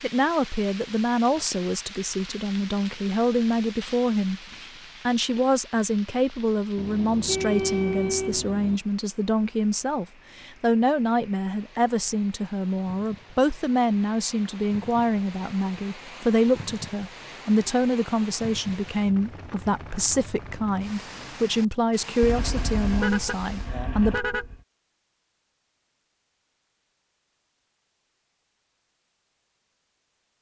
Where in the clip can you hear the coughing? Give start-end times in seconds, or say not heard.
not heard.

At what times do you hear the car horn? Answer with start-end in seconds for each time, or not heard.
6.8-8.8, 22.2-24.6.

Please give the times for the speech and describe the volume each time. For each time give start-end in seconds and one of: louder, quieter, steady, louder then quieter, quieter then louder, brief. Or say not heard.
0.0-24.2 steady.